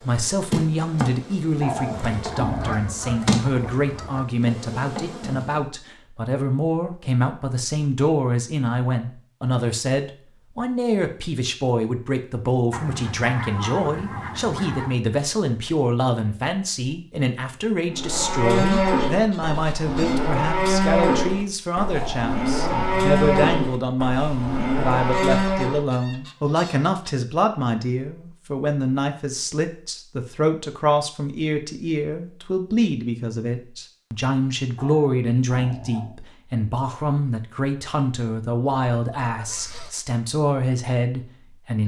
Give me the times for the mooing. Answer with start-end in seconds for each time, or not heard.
17.9-25.9.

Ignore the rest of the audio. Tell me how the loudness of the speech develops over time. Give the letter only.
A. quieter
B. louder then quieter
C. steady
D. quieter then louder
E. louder
C.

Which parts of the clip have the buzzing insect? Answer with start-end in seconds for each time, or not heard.
0.0-5.6.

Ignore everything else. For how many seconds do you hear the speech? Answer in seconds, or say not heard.
42 s.